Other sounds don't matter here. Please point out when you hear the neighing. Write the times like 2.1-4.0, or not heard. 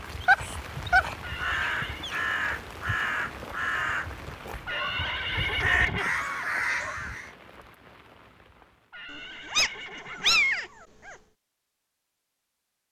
1.2-2.0, 4.7-6.2, 8.9-10.4.